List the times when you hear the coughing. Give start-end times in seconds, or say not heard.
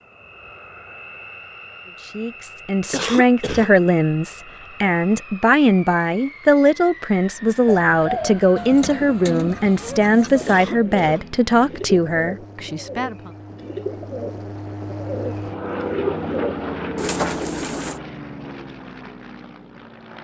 2.9-3.7, 10.4-11.2.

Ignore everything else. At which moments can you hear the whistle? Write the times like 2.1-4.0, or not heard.
not heard.